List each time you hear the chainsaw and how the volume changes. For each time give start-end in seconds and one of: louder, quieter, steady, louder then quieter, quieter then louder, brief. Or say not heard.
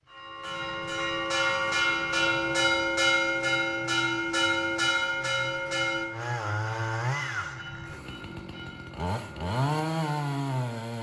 0.0-10.9 louder.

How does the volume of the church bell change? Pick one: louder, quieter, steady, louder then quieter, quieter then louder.
quieter.